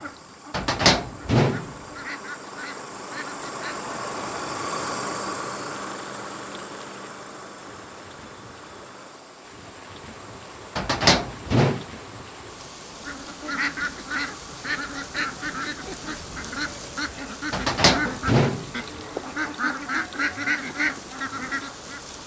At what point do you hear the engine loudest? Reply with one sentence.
The volume of the engine peaks at 5 seconds.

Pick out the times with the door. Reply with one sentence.
The door can be heard from 0.5 to 1.8 s, from 10.8 to 11.8 s and from 17.5 to 19.2 s.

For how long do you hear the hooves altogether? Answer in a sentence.
You can't hear the hooves here.